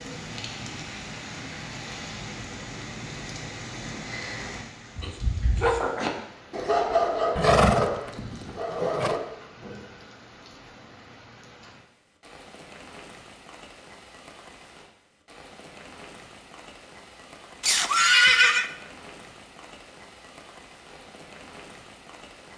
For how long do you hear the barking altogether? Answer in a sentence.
The barking can be heard for 4 seconds in total.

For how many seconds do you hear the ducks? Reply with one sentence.
You can't hear the ducks here.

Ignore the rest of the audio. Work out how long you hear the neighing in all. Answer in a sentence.
The neighing can be heard for 3 seconds in total.